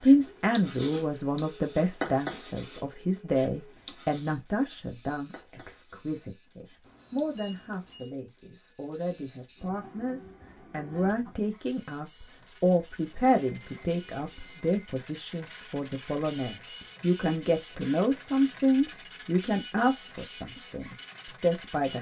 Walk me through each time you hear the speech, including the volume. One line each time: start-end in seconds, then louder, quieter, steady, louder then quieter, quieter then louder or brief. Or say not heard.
0.0-21.9 quieter then louder.